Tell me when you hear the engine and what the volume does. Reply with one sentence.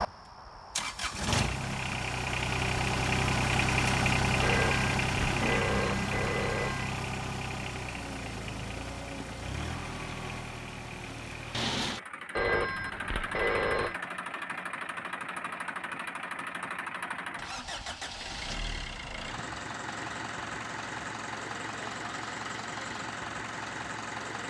The engine can be heard from 0.0 to 24.4 s, getting quieter.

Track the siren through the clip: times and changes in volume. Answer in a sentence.
You can't hear the siren here.